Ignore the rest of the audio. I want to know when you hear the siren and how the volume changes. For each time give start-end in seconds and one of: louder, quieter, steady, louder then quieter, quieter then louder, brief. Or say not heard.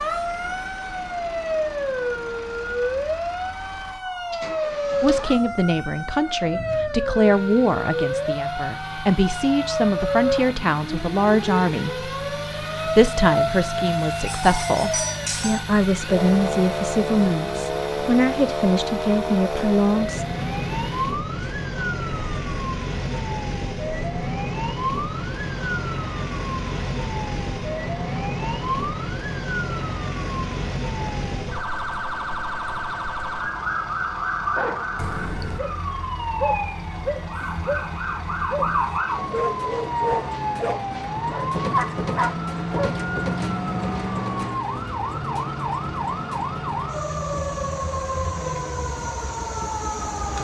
0.0-50.3 steady.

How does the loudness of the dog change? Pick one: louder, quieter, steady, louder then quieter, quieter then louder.
louder.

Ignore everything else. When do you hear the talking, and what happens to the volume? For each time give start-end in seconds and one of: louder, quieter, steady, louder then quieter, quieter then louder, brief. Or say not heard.
5.0-20.2 steady.